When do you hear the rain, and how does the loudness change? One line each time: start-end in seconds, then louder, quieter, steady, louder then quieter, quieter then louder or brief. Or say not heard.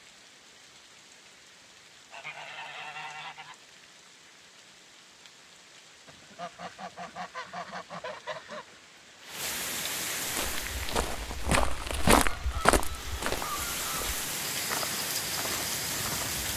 0.0-16.5 louder.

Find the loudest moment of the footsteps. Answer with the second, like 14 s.
12 s.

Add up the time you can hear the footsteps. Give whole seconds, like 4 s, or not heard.
6 s.